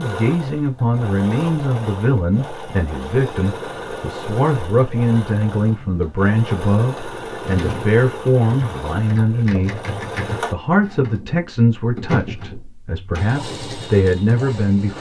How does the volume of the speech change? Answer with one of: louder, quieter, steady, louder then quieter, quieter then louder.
steady.